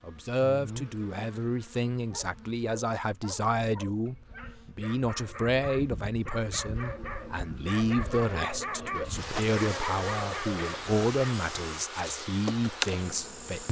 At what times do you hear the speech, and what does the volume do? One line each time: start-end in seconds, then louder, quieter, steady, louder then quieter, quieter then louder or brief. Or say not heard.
0.1-13.6 steady.